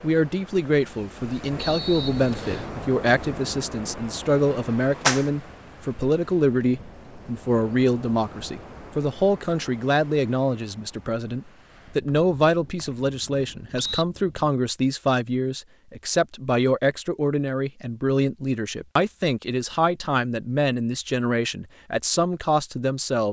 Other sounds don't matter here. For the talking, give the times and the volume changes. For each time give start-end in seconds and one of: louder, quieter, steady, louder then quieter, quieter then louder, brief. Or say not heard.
0.0-23.2 steady.